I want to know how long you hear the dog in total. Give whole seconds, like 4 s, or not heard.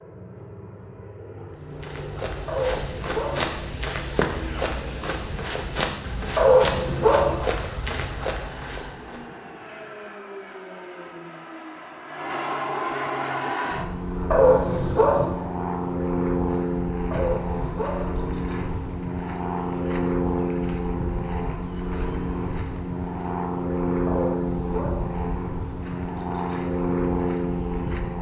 5 s.